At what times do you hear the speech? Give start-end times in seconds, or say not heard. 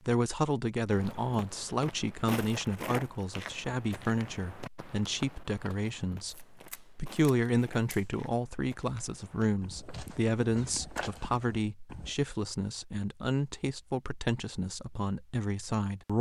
0.1-16.1.